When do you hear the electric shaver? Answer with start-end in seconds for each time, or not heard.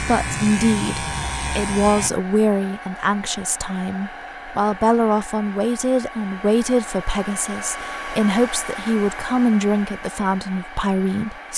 0.0-2.1.